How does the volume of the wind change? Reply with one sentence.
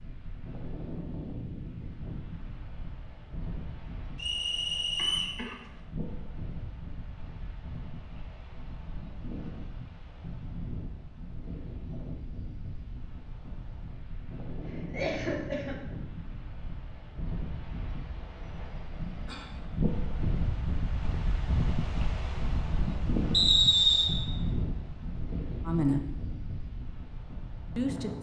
The loudness of the wind goes up.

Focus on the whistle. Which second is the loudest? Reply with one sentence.
The loudest moment of the whistle is at 24 seconds.